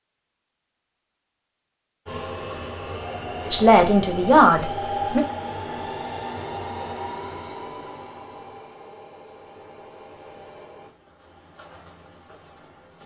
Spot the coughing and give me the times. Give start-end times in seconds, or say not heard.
not heard.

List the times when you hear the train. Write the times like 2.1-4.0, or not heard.
2.0-13.0.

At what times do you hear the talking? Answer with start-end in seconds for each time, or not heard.
3.5-5.2.